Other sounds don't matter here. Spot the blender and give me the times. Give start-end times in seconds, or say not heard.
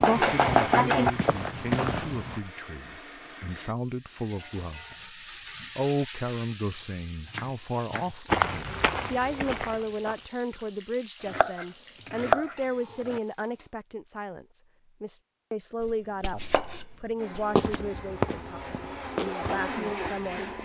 0.1-3.8, 17.1-20.6.